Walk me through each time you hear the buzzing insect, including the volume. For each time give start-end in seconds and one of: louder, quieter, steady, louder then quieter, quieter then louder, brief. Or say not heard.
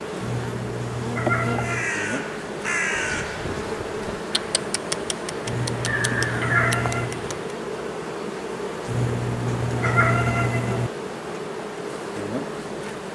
0.0-13.1 steady.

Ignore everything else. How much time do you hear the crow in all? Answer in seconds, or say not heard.
6 s.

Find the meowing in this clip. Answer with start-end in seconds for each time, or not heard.
0.2-1.9, 5.5-7.2, 8.8-10.9.